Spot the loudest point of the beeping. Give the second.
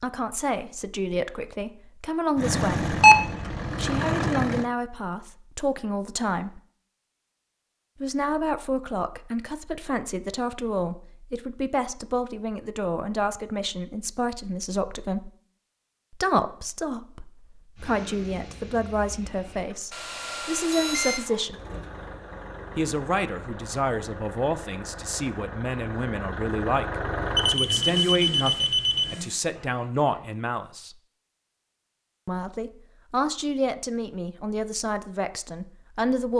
3 s.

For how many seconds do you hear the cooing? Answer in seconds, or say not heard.
not heard.